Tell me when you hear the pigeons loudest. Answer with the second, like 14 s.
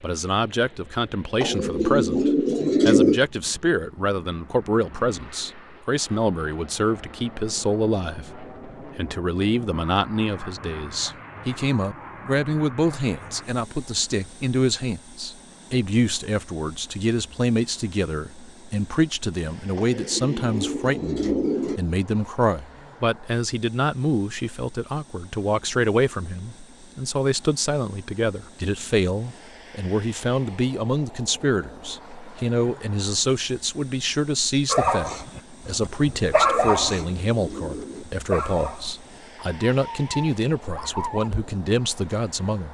3 s.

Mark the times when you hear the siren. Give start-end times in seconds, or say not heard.
not heard.